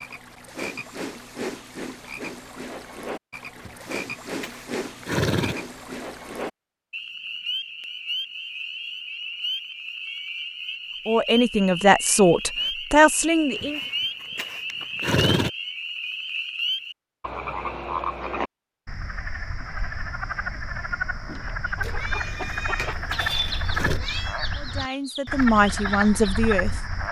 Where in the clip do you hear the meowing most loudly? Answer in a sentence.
The volume of the meowing peaks at 23 seconds.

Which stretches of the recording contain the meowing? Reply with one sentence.
You can hear the meowing from 21.8 to 24.4 s.